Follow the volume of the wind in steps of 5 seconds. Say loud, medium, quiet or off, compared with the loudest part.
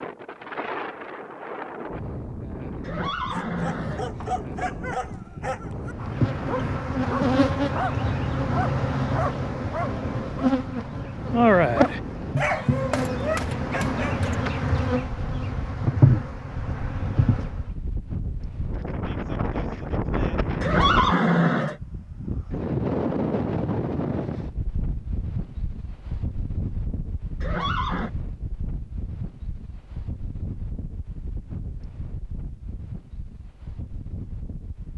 medium, medium, medium, medium, loud, medium, quiet.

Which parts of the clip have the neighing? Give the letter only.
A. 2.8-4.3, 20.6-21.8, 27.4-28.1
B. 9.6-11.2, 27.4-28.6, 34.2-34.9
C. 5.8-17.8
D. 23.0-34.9
A.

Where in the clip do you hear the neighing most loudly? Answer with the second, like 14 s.
21 s.